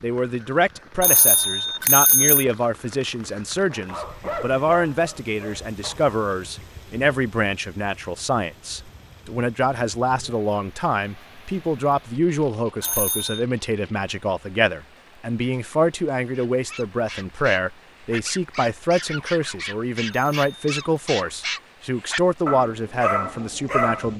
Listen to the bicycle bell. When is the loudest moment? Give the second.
2 s.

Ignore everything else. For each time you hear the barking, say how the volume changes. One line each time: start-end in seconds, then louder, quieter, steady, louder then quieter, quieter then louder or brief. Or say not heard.
3.7-6.2 brief
16.3-24.1 louder.